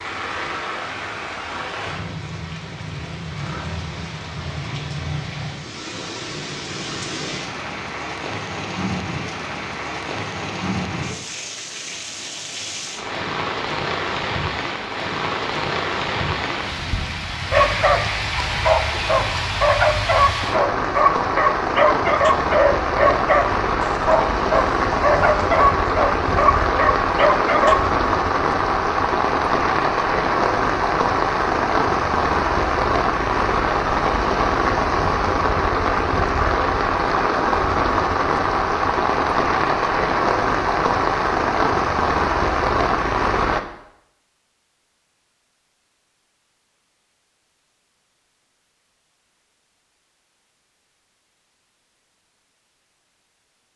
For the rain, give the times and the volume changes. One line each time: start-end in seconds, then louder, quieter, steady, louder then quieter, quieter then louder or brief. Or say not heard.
0.0-43.6 louder.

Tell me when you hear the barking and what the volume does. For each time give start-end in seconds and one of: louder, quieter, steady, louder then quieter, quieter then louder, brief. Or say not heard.
17.5-27.9 steady.